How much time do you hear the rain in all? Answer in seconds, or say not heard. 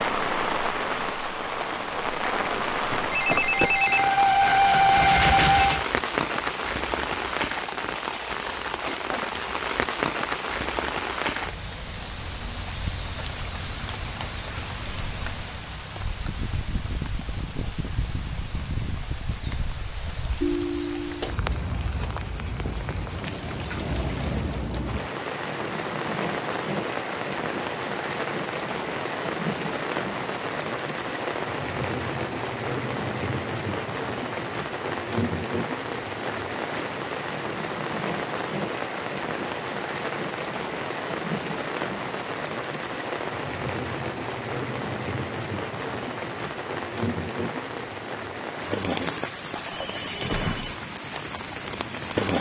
52 s.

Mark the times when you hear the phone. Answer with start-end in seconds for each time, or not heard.
3.1-5.8, 20.4-21.4, 49.7-50.8.